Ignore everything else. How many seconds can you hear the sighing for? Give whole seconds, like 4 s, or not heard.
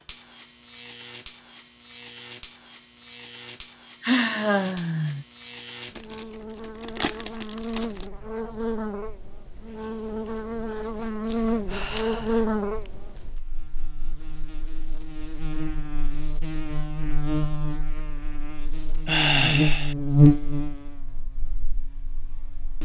4 s.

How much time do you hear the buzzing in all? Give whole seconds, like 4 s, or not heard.
23 s.